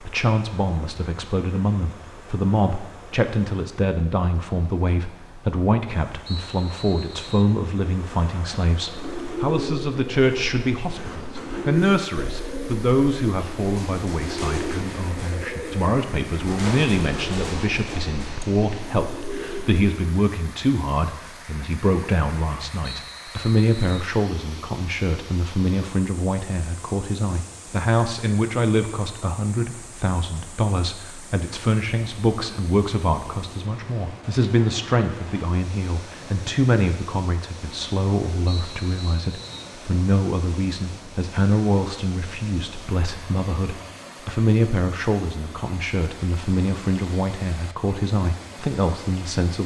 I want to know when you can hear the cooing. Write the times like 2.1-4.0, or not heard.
8.9-19.9.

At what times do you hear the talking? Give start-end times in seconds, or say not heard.
0.0-49.6.